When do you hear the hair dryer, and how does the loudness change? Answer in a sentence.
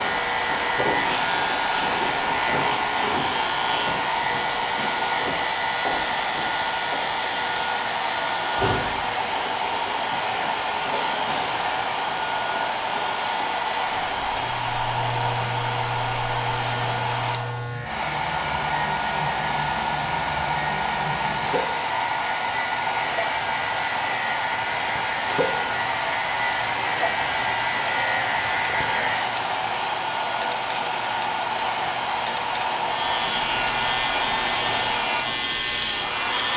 The hair dryer can be heard from 0.0 to 36.5 s, at a steady volume.